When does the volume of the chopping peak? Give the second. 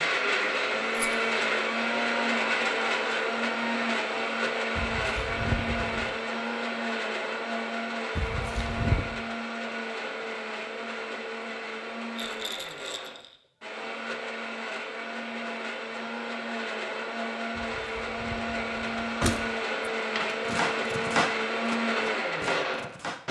21 s.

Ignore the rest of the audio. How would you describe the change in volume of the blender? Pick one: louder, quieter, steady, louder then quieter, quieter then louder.
quieter then louder.